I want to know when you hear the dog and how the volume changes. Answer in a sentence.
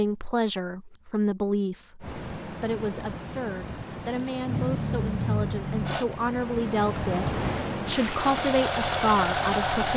The dog can't be heard in this clip.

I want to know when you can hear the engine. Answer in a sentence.
The engine can be heard from 4.5 to 6.0 s and from 8.2 to 9.9 s.